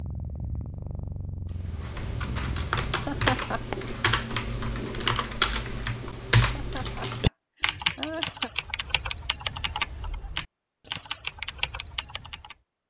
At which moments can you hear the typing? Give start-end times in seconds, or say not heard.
1.6-12.6.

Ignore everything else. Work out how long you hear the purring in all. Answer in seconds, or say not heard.
3 s.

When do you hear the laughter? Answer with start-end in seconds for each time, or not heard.
3.0-3.6, 6.5-8.5.